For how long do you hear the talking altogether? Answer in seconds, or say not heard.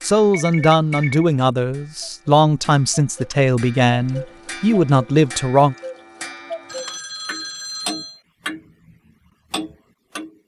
6 s.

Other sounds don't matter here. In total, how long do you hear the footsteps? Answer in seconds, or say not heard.
not heard.